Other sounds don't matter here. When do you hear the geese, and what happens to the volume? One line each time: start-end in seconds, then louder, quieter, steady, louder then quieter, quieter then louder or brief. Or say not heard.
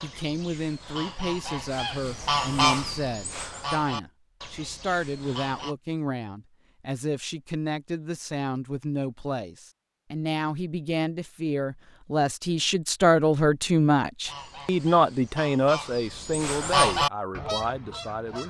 0.0-5.8 louder then quieter
14.2-18.4 louder then quieter.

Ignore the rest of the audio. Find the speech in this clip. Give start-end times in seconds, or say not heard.
0.0-18.4.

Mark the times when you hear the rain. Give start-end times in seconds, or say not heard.
not heard.